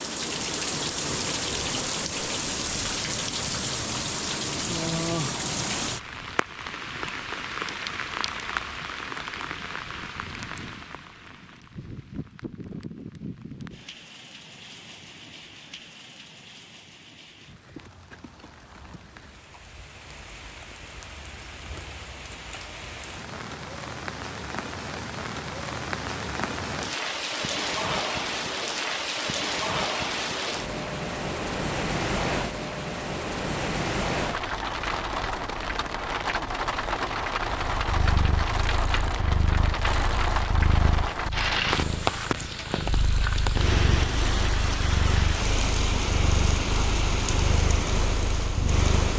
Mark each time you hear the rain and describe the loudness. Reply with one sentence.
You can hear the rain from 0.0 to 49.1 s, getting quieter then louder.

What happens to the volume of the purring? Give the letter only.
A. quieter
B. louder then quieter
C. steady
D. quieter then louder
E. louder
C.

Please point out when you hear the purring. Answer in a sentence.
You can hear the purring from 37.6 to 49.1 s.